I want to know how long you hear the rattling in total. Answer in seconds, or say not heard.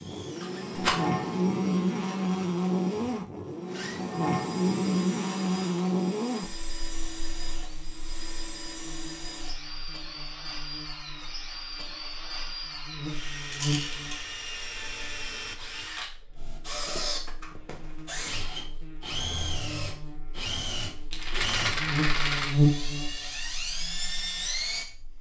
3 s.